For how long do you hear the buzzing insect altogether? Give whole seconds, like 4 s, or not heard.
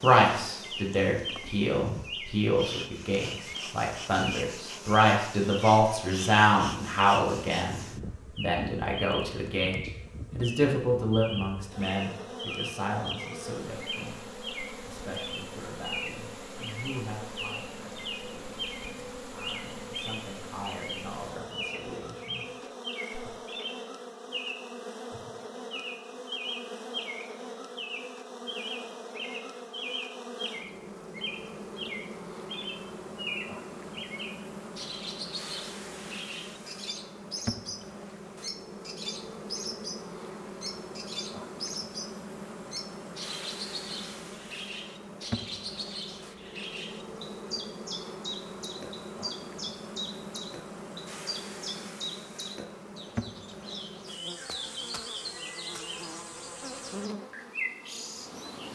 59 s.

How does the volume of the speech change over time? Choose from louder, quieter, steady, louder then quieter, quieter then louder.
quieter.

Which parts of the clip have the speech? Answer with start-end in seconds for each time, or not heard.
0.0-14.2, 14.8-22.7.